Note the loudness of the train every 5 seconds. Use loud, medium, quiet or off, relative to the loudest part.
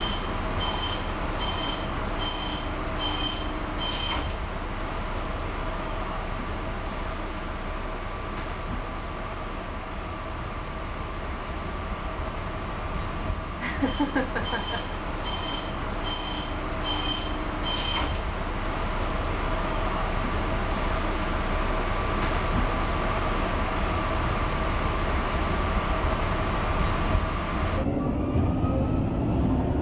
loud, medium, medium, loud, loud, loud.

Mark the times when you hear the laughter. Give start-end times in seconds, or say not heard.
13.6-14.9.